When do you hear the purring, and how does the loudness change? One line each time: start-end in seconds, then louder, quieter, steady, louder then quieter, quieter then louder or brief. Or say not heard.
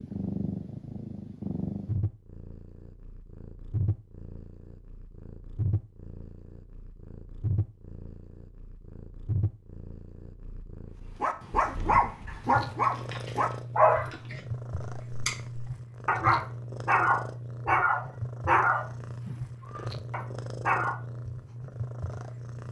0.0-22.6 steady.